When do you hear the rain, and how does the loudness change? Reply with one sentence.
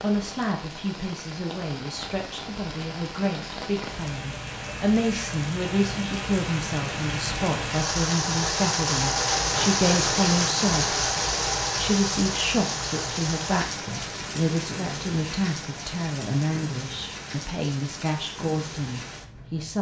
You can hear the rain from 0.0 to 19.7 s, getting louder then quieter.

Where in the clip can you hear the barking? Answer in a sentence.
You can't hear the barking here.